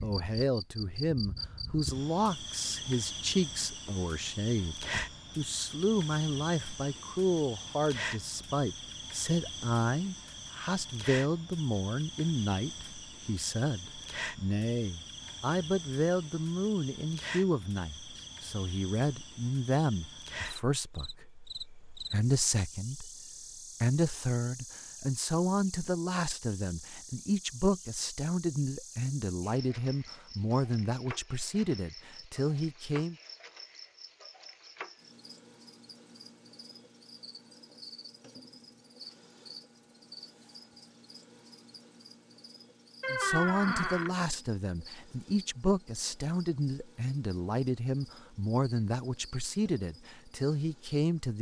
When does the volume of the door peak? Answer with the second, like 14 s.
43 s.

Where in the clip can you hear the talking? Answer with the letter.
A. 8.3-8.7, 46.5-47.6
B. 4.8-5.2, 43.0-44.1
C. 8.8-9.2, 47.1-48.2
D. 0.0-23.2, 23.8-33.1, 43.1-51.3
D.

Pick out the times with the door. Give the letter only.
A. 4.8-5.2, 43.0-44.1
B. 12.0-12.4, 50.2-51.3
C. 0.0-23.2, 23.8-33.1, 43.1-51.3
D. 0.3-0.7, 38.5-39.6
A.